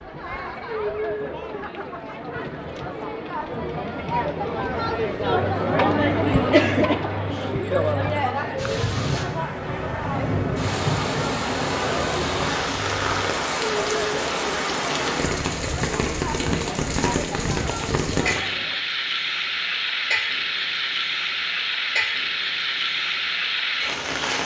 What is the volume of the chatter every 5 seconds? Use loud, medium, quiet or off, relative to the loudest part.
medium, loud, medium, medium, off.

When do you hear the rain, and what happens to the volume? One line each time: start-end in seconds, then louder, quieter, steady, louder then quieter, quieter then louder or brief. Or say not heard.
8.6-24.4 steady.